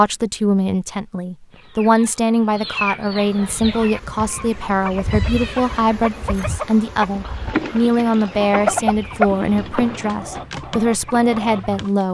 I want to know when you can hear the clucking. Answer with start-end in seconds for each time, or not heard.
1.5-11.9.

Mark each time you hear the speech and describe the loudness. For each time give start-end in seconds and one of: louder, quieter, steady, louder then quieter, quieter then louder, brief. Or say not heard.
0.0-12.0 steady.